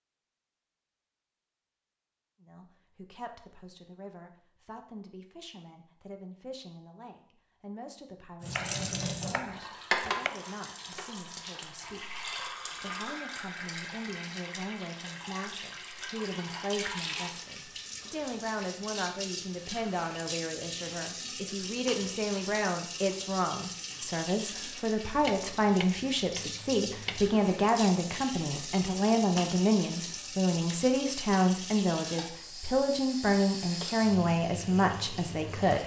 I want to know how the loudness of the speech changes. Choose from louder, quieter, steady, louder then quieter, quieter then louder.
louder.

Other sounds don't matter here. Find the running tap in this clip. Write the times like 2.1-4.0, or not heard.
8.4-35.8.